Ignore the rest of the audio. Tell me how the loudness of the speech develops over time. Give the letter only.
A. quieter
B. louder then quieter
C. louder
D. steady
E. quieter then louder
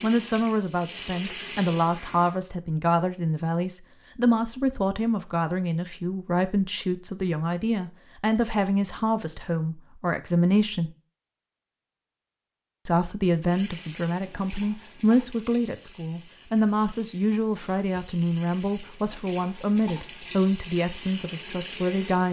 D.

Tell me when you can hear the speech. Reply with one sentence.
The speech can be heard from 0.0 to 10.9 s and from 12.8 to 22.2 s.